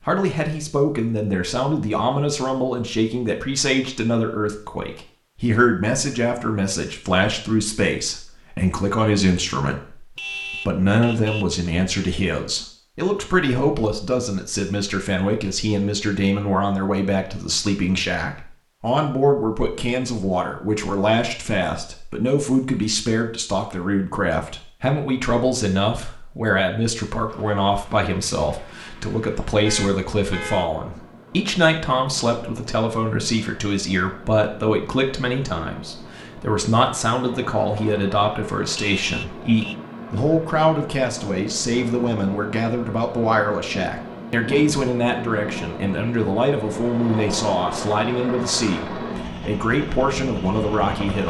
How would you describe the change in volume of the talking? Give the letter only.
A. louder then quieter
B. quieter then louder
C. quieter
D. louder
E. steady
E.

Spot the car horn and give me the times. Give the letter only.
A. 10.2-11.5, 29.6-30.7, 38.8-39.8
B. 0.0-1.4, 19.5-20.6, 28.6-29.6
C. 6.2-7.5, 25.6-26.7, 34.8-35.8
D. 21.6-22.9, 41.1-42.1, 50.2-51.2
A.